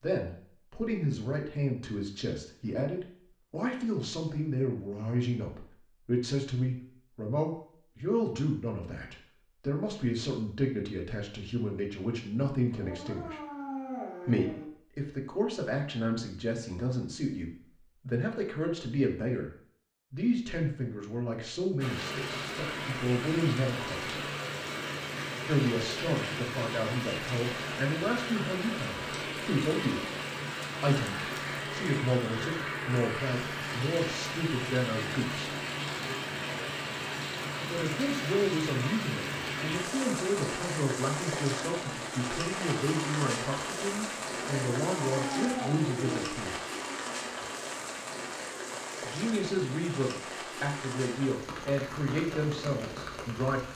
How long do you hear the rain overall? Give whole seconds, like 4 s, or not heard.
32 s.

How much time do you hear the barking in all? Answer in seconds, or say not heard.
4 s.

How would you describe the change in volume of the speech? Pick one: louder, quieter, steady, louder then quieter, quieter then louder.
steady.